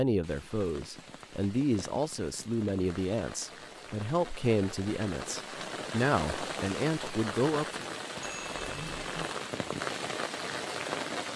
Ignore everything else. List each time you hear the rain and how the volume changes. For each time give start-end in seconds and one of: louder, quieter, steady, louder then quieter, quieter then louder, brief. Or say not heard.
0.1-11.3 louder.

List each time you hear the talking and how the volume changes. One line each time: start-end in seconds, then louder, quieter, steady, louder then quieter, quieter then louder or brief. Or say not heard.
0.0-7.8 steady.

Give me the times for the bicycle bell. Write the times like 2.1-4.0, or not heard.
8.2-9.3.